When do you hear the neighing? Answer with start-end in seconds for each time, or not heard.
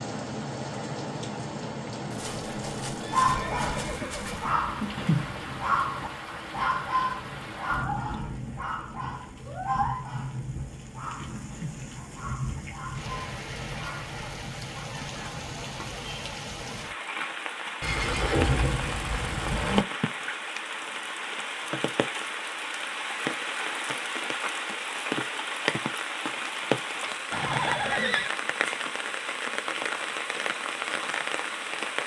2.1-4.5, 17.8-19.9, 27.3-28.3.